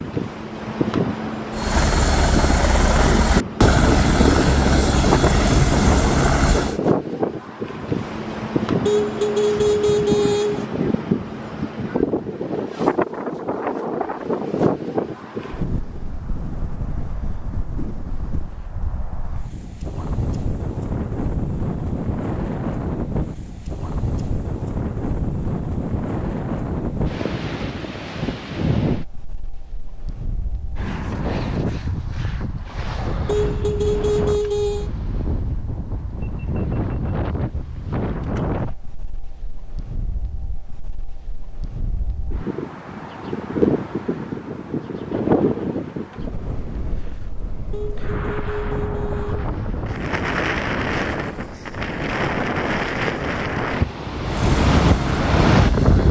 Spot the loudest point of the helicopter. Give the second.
4 s.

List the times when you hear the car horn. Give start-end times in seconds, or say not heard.
8.8-10.7, 33.2-34.9, 47.7-49.5.